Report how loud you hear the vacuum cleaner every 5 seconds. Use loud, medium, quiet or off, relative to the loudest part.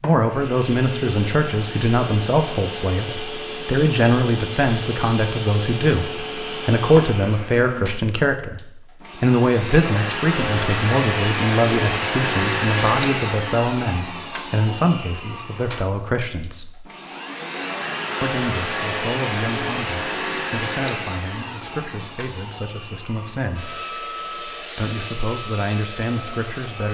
medium, medium, loud, loud, medium, medium.